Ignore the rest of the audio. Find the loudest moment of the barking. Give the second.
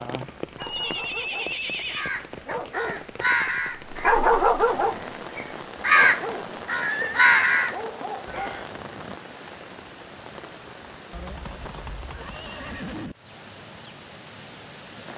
4 s.